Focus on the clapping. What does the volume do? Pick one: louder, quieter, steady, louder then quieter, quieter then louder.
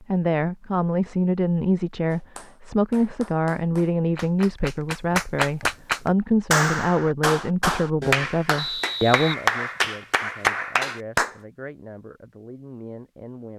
louder.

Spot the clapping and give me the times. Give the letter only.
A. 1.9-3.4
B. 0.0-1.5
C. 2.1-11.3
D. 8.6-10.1
C.